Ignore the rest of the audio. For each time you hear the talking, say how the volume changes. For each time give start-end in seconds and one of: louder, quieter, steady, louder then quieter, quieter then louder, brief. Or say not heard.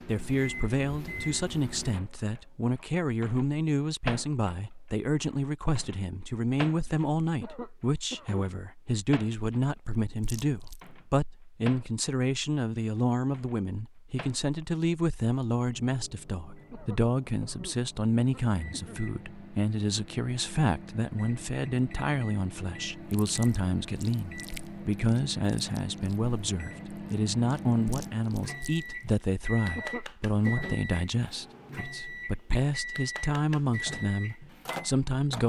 0.1-35.4 steady.